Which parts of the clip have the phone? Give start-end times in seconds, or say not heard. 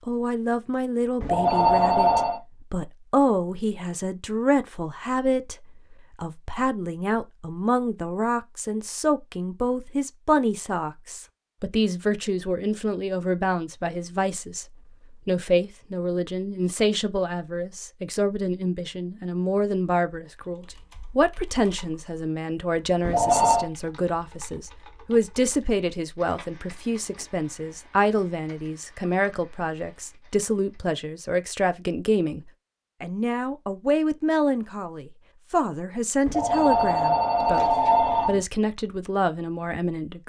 1.2-2.4, 23.0-23.7, 36.2-38.4.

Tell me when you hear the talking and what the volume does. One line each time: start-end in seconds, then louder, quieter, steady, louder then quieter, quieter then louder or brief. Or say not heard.
0.1-40.2 steady.